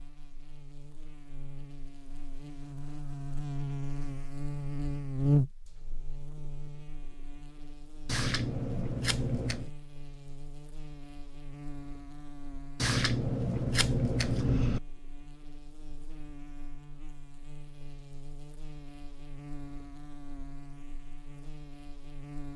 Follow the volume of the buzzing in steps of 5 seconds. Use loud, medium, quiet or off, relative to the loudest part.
medium, loud, quiet, quiet, quiet.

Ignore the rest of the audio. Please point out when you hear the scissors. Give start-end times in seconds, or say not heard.
8.1-9.7, 12.8-14.8.